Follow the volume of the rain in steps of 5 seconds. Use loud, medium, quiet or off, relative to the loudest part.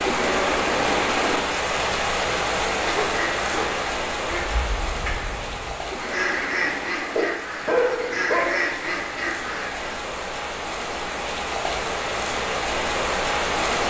loud, medium, loud.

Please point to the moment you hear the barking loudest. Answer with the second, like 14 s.
8 s.